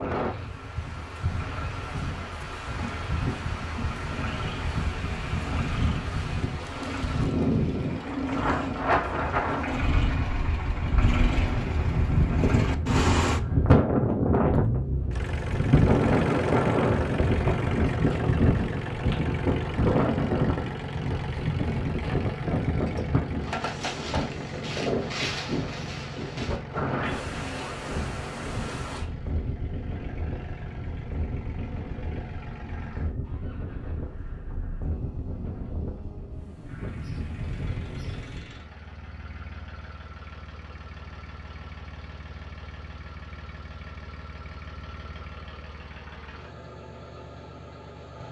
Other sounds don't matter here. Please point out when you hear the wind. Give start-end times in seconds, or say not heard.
0.0-38.5.